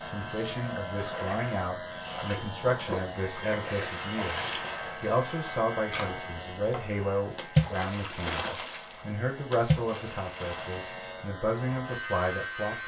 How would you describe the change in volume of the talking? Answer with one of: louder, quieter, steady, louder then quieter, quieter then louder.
steady.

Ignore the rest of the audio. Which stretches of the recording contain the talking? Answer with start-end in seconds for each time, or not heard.
0.0-12.8.